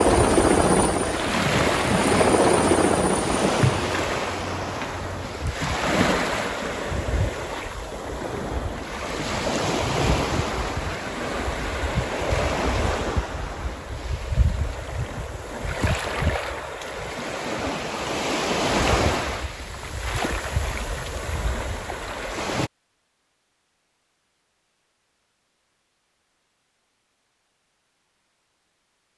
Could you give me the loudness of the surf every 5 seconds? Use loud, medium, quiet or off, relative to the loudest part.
loud, loud, loud, loud, medium, off.